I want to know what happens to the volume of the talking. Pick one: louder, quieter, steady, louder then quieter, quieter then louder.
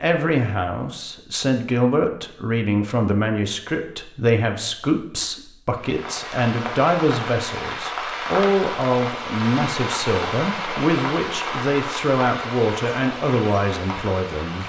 steady.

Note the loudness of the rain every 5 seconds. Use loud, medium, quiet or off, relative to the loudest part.
off, loud, loud.